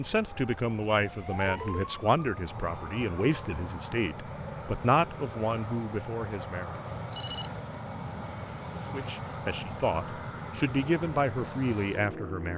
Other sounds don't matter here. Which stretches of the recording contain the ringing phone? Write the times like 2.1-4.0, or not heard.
1.4-1.9, 6.8-7.6.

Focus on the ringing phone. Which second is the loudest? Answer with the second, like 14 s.
7 s.